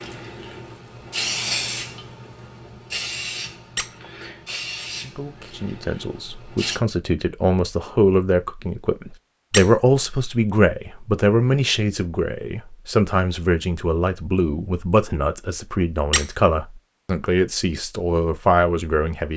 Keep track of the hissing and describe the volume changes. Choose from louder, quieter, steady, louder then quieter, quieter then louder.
quieter.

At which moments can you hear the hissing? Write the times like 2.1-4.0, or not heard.
0.0-6.8.